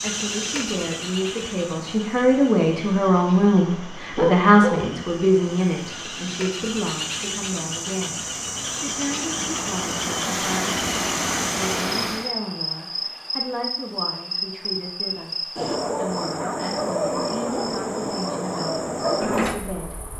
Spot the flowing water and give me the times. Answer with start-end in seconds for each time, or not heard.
0.0-12.3.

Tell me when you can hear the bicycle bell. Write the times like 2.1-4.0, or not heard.
not heard.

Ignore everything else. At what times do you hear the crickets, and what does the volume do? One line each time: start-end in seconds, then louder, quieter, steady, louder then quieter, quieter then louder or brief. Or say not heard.
0.0-20.1 louder.